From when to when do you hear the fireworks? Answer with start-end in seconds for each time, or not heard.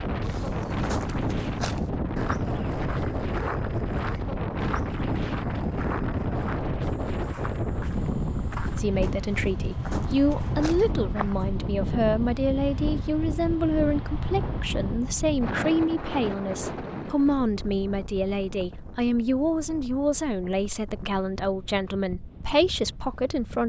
not heard.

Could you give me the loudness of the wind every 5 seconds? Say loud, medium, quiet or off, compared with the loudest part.
loud, loud, loud, medium, quiet.